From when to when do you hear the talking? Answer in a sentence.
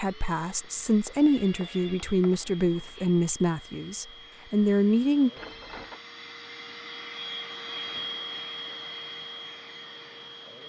The talking can be heard from 0.0 to 5.3 s.